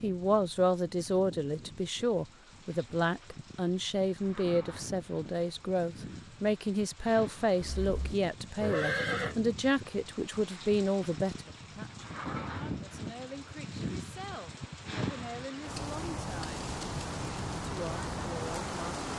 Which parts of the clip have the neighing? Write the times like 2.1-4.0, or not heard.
7.6-9.3.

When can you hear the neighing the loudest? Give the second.
9 s.